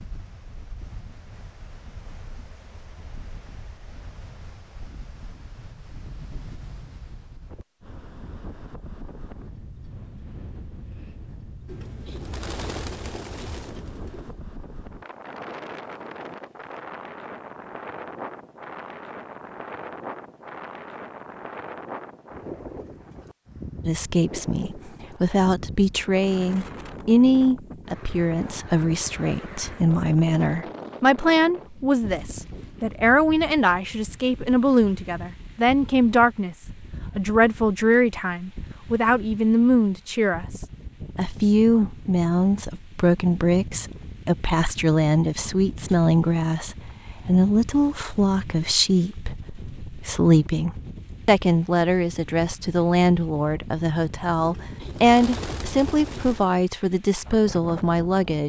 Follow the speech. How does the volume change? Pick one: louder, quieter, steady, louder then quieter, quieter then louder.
steady.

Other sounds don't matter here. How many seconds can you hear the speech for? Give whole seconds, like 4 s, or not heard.
34 s.